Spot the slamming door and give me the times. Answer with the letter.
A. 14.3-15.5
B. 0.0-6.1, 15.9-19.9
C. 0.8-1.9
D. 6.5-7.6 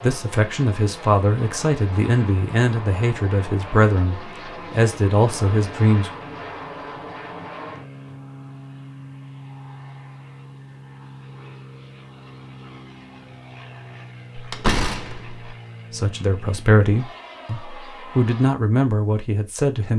A.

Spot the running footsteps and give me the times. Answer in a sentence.
The running footsteps can't be heard in this clip.